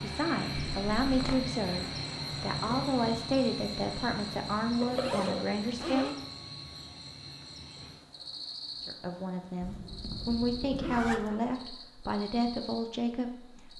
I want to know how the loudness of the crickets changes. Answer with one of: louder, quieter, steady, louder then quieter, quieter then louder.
quieter.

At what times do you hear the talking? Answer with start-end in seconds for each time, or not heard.
0.0-6.2, 8.8-13.7.